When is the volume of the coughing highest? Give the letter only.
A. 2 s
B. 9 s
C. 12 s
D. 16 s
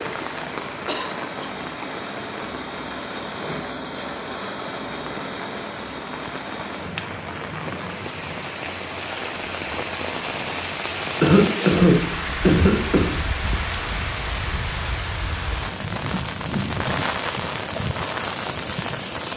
C.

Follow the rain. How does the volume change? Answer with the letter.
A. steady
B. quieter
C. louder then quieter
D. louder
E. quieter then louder
D.